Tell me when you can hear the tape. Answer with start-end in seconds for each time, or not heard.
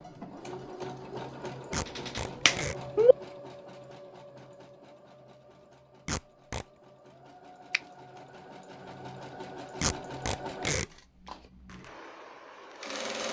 1.7-2.8, 6.0-6.7, 9.8-10.8.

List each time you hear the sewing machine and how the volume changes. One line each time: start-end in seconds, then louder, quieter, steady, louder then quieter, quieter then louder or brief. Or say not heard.
0.0-13.2 quieter then louder.